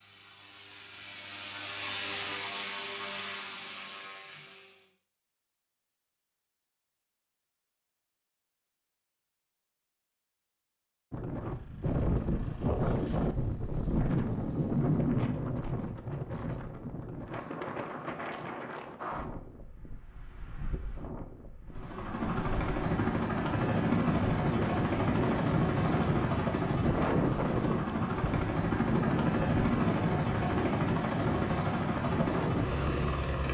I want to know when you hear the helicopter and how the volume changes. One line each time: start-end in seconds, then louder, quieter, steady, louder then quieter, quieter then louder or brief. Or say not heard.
0.0-4.9 louder then quieter
21.8-33.5 steady.